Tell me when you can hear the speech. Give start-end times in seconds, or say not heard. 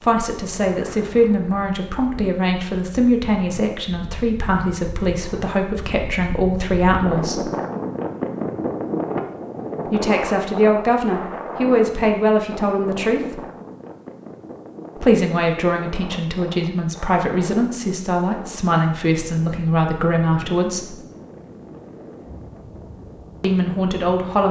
0.0-7.5, 9.9-13.4, 14.9-20.9, 23.4-24.4.